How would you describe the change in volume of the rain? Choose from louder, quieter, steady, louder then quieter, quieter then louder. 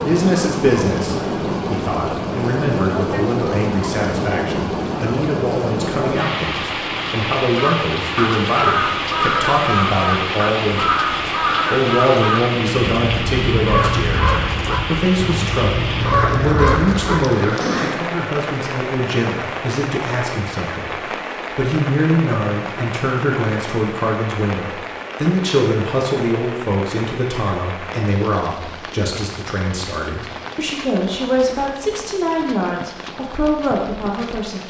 quieter.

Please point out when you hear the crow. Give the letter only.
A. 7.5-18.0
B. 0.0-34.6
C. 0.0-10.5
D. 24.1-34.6
A.